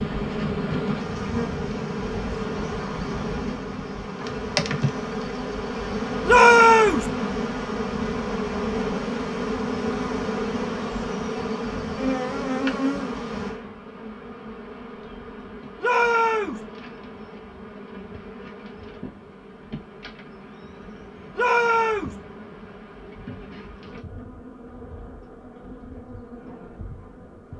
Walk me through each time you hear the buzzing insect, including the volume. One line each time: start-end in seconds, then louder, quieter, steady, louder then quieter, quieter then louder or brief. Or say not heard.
0.0-27.5 quieter.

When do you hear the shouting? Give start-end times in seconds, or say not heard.
6.2-7.0, 15.8-16.6, 21.4-22.1.